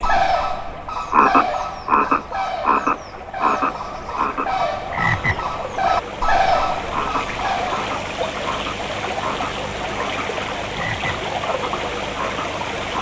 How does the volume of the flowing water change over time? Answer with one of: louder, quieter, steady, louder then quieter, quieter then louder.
louder.